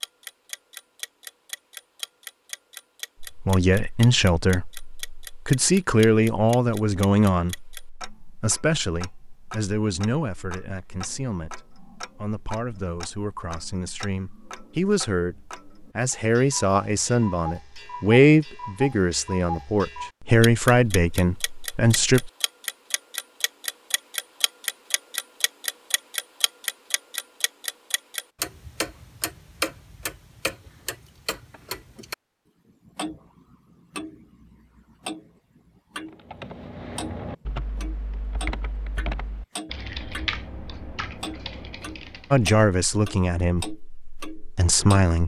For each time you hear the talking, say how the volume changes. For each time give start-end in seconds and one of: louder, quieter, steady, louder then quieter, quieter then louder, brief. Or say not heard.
3.2-22.3 quieter then louder
42.3-45.2 brief.